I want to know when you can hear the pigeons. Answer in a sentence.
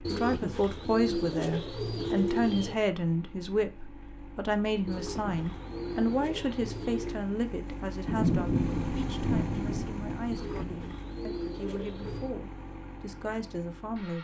You can hear the pigeons from 0.0 to 2.8 s, from 4.8 to 7.2 s and from 10.3 to 12.3 s.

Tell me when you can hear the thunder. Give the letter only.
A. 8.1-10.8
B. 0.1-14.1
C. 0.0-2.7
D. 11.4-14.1
A.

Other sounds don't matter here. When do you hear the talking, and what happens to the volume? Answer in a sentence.
The talking can be heard from 0.1 to 14.1 s, getting quieter.